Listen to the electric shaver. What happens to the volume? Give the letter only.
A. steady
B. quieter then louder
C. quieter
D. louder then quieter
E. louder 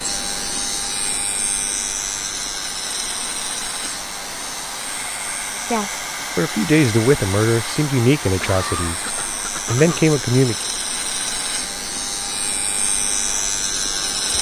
B.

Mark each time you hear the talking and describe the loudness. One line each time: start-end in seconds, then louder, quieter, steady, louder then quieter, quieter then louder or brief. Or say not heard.
5.7-10.6 quieter then louder.